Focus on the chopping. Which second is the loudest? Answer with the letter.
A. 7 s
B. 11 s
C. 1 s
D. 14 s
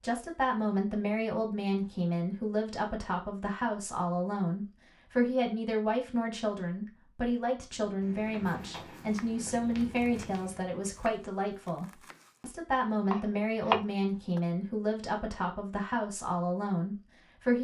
D.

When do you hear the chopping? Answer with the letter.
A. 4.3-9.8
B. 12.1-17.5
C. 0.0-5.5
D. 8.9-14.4
D.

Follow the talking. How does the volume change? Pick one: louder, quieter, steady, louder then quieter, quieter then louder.
steady.